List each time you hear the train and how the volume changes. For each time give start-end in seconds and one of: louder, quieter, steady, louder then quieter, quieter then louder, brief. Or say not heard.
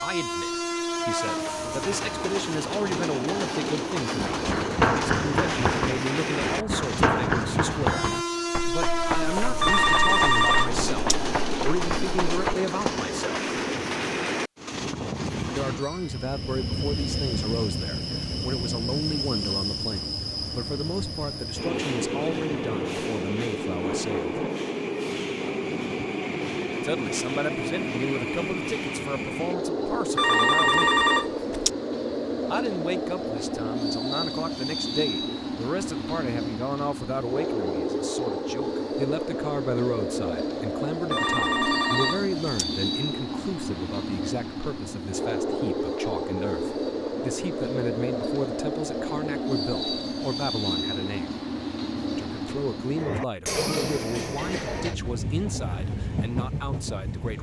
0.0-57.3 steady.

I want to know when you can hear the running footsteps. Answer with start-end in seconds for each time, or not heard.
4.2-13.0.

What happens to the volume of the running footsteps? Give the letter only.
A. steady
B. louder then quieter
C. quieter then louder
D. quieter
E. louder
D.